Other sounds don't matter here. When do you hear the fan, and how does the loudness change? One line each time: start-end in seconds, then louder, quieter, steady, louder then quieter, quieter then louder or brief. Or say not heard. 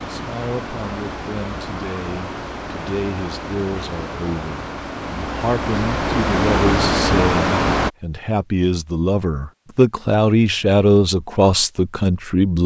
0.0-7.9 louder.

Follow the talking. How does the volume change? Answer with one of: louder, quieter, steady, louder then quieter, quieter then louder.
louder.